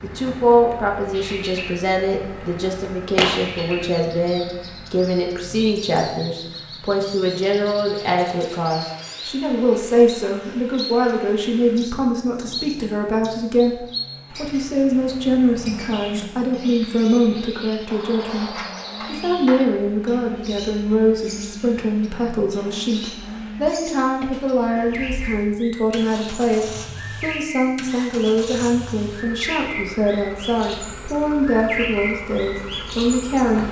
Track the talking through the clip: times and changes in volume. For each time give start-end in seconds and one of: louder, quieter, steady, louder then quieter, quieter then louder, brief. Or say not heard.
0.0-33.6 steady.